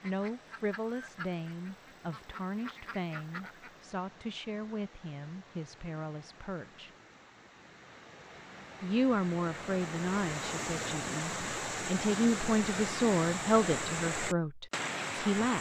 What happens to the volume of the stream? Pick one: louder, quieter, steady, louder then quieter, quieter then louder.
louder.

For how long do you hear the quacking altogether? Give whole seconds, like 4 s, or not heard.
4 s.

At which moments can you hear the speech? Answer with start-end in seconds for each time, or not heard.
0.0-6.9, 8.8-15.5.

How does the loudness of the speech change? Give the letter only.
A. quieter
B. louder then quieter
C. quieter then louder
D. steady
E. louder
E.